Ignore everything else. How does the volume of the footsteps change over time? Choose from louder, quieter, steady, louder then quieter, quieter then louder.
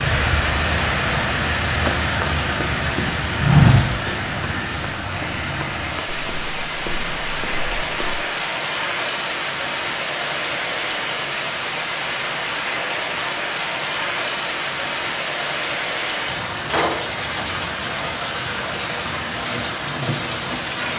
louder then quieter.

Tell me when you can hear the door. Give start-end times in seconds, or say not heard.
16.5-17.4.